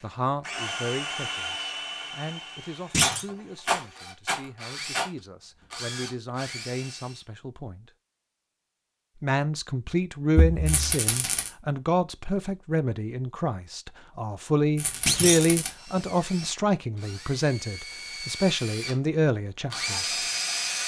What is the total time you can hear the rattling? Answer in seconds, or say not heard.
4 s.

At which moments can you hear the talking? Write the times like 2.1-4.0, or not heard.
0.0-7.8, 9.2-20.2.